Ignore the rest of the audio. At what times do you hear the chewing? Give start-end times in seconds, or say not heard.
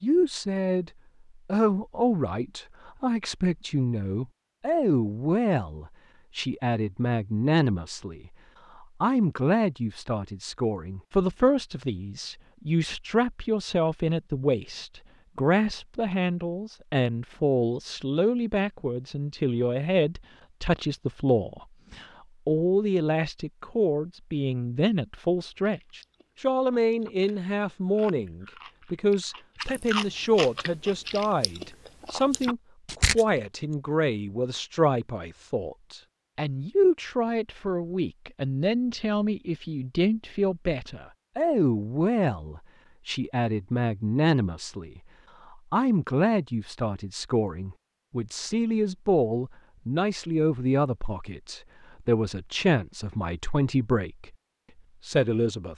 25.6-33.2.